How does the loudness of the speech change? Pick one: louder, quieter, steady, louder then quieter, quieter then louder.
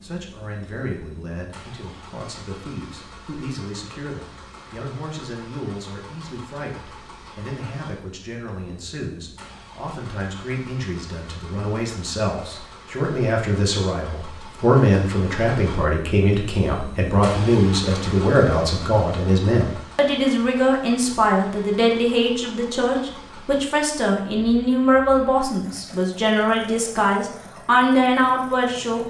louder.